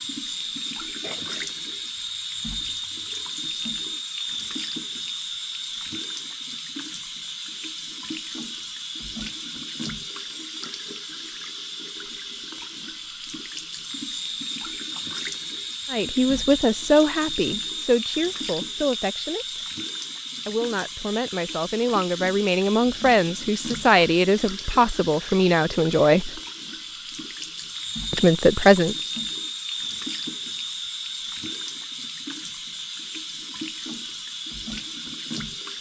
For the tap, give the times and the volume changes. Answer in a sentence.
You can hear the tap from 0.0 to 35.7 s, at a steady volume.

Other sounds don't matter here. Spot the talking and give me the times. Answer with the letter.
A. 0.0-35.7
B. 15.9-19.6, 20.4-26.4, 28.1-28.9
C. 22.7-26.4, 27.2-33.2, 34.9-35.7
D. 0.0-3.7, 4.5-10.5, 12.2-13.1
B.